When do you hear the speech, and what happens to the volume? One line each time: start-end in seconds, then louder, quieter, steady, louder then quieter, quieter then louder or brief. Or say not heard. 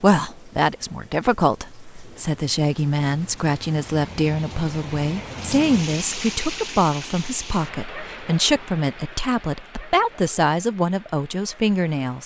0.0-12.2 steady.